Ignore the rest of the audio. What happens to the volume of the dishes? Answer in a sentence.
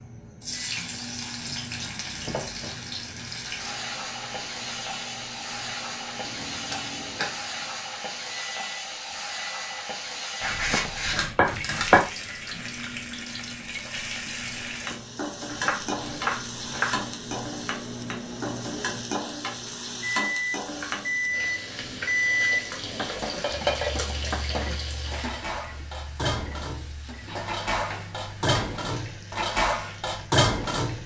The volume of the dishes goes up.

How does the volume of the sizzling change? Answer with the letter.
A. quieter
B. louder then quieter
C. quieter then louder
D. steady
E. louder
A.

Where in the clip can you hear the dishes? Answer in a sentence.
You can hear the dishes from 22.8 to 31.0 s.